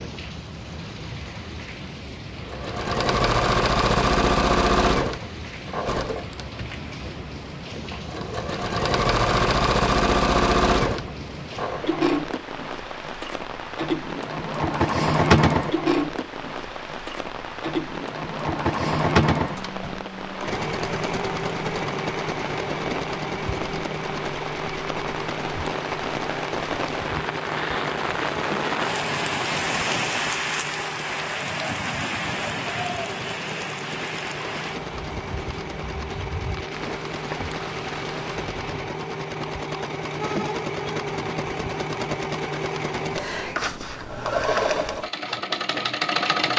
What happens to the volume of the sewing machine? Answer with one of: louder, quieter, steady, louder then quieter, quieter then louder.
quieter then louder.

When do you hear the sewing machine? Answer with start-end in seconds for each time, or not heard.
2.5-46.5.